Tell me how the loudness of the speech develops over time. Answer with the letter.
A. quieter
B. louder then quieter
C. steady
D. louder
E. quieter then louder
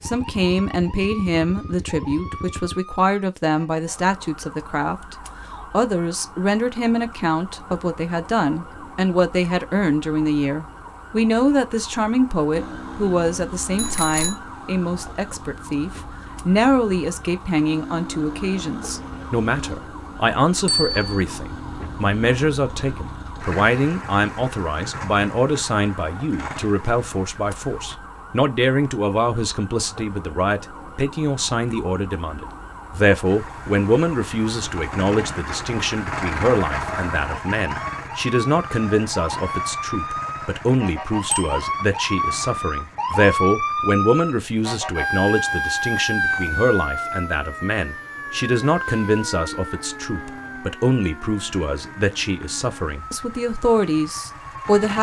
C.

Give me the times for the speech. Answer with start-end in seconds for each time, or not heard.
0.0-54.9.